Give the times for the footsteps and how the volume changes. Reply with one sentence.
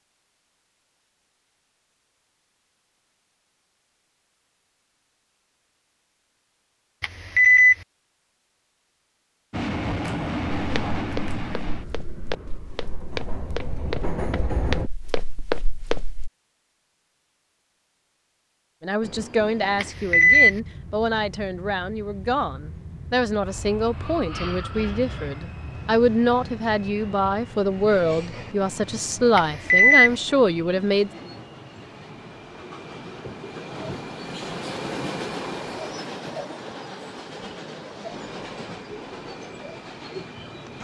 You can hear the footsteps from 10.6 to 16.3 s, getting louder.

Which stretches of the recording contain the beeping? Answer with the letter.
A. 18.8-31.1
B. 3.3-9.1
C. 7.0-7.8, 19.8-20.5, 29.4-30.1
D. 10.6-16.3
C.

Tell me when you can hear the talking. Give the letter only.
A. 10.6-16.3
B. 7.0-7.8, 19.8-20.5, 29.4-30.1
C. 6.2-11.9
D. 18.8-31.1
D.